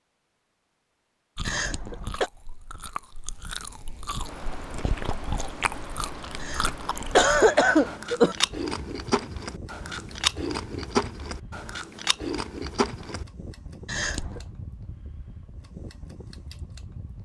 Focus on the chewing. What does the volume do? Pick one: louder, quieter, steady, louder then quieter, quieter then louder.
louder.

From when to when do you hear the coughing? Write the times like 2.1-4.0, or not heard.
1.4-2.3, 6.4-8.3, 13.8-14.5.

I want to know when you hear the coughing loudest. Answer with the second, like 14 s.
7 s.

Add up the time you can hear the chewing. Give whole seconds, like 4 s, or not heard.
12 s.